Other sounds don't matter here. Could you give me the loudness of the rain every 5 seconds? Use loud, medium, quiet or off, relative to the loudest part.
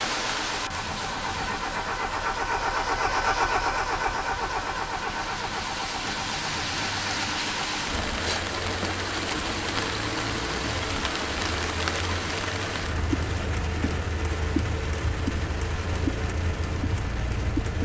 medium, loud, loud, loud.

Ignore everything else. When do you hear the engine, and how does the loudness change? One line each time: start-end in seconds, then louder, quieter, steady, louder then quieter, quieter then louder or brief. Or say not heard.
0.0-17.7 quieter.